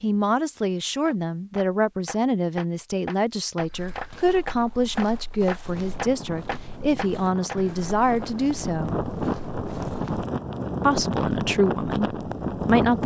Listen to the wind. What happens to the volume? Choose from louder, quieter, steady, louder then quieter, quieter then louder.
louder.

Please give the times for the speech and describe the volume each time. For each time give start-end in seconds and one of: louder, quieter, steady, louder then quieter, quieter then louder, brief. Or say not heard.
0.0-8.9 steady
10.8-13.0 brief.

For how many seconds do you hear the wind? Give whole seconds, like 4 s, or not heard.
7 s.